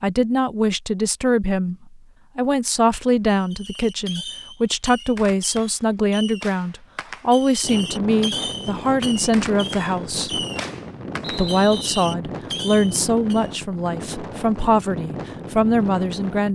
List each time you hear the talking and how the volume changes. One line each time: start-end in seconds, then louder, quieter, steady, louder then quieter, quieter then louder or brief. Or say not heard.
0.0-1.8 brief
2.4-10.4 steady
11.2-16.5 quieter then louder.